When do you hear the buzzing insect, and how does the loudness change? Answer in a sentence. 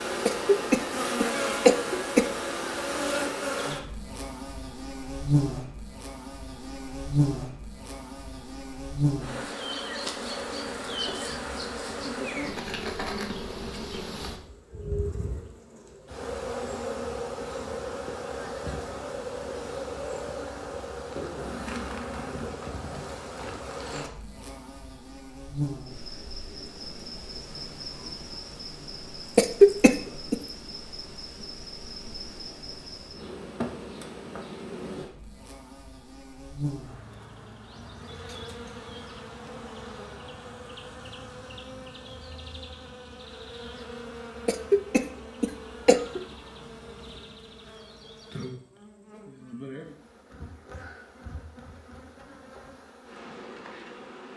The buzzing insect can be heard from 0.0 to 54.3 s, getting quieter.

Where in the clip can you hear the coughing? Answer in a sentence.
The coughing can be heard from 0.2 to 2.2 s, from 29.4 to 30.4 s and from 44.5 to 46.2 s.